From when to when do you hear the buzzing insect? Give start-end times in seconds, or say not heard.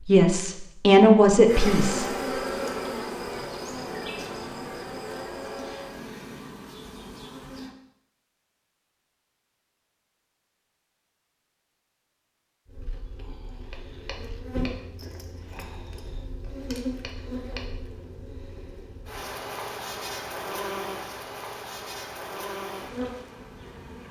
1.4-7.8, 12.7-24.0.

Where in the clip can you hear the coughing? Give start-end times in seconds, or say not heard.
not heard.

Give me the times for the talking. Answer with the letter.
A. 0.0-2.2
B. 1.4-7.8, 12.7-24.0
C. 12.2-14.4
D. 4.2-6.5
A.